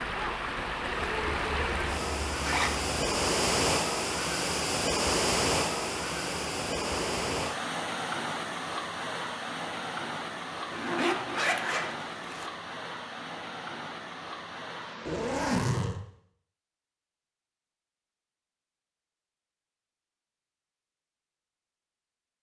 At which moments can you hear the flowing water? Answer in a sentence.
The flowing water can be heard from 0.0 to 15.6 s.